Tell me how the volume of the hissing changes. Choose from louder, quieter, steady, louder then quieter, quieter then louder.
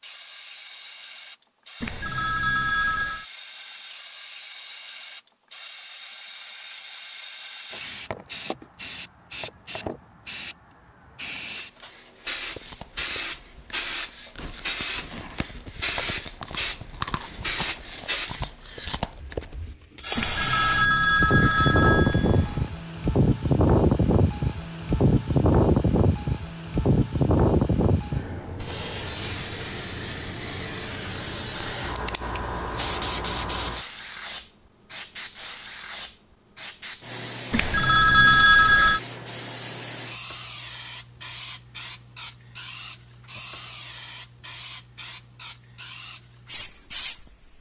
louder then quieter.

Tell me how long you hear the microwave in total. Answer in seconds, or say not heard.
not heard.